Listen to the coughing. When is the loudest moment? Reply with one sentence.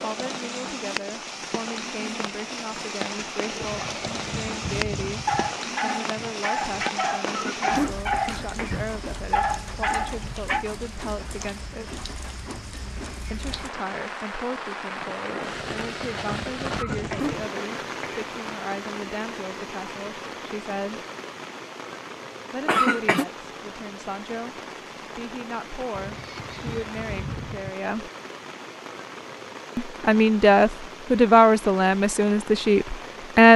The volume of the coughing peaks at 23 seconds.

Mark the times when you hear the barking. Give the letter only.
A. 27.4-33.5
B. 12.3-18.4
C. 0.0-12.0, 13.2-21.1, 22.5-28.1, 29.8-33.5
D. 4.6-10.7
D.